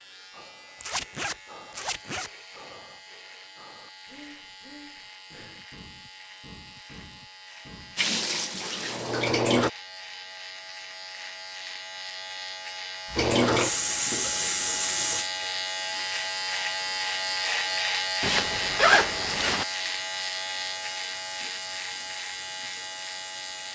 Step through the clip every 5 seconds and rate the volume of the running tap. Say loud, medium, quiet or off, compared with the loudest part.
off, loud, loud, quiet, quiet.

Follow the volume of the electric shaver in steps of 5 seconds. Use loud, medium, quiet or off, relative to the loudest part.
quiet, quiet, medium, loud, medium.